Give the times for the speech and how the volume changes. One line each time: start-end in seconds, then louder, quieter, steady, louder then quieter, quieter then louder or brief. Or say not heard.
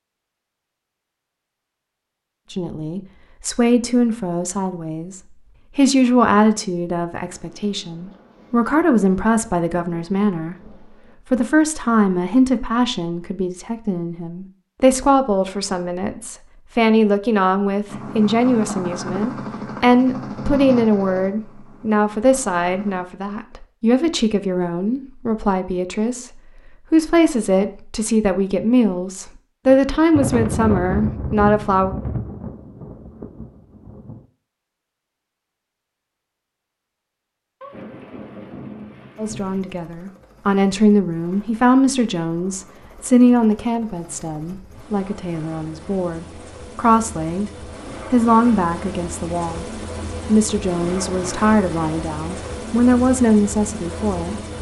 2.5-31.9 steady
39.1-47.5 quieter then louder
48.1-54.4 louder.